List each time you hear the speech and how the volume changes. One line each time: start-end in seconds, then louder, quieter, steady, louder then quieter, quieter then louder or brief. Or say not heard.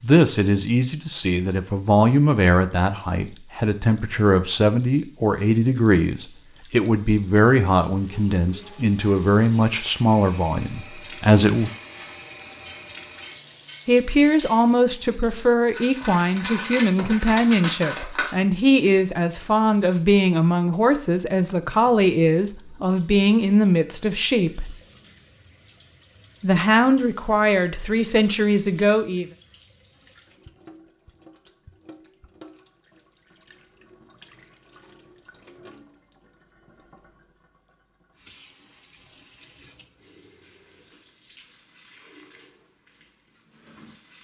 0.0-11.7 steady
13.8-24.8 steady
26.4-29.2 brief.